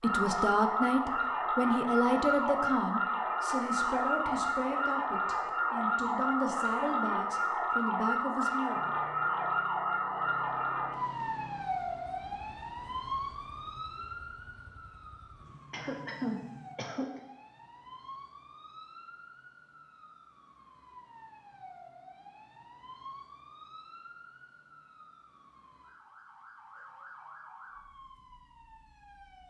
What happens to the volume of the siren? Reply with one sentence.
The volume of the siren goes down.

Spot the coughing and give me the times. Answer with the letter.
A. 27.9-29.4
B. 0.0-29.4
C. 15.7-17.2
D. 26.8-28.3
C.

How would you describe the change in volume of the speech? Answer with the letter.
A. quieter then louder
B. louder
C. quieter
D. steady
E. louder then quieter
C.